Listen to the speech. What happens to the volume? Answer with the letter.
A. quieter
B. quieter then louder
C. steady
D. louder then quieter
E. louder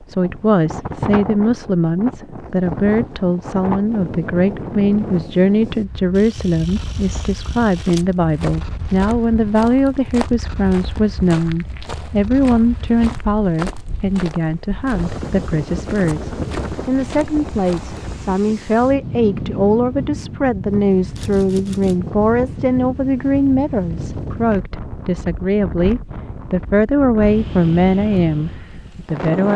C.